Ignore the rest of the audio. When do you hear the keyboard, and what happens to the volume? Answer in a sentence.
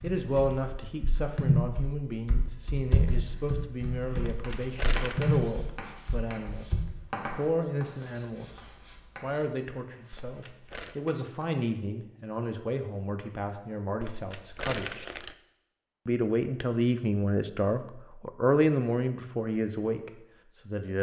You can hear the keyboard from 0.0 to 7.0 s, getting quieter then louder.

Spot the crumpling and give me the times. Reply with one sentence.
You can hear the crumpling from 4.2 to 5.2 s, from 10.1 to 11.0 s and from 14.0 to 15.3 s.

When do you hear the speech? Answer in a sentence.
The speech can be heard from 0.0 to 6.7 s, from 7.2 to 15.1 s and from 16.1 to 20.9 s.